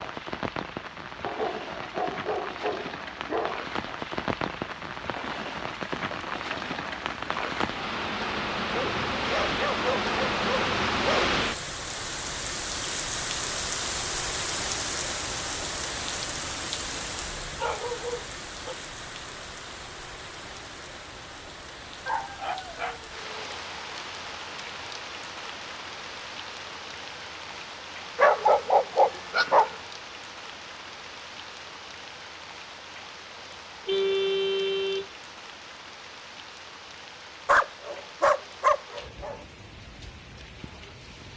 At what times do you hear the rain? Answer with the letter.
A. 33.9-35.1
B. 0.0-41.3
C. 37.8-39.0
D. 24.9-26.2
B.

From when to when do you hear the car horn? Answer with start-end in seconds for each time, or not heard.
33.9-35.1.